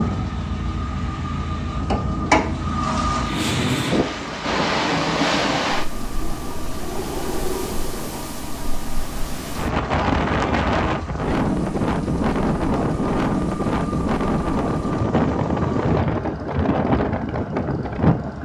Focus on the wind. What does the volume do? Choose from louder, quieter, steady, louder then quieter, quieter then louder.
louder.